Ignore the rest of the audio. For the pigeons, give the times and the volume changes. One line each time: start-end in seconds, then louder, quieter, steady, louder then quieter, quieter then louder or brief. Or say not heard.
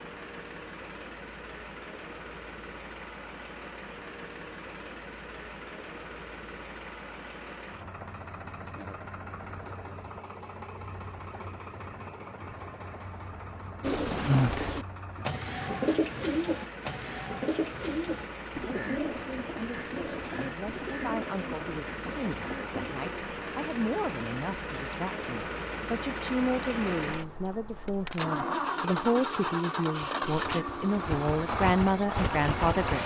13.8-23.2 quieter.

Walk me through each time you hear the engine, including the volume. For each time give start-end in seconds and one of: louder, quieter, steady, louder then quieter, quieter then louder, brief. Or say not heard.
0.0-33.0 louder.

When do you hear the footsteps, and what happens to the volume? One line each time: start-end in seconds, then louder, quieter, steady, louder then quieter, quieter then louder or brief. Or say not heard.
not heard.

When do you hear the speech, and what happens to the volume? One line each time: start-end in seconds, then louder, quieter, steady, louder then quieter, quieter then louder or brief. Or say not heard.
18.6-33.0 louder.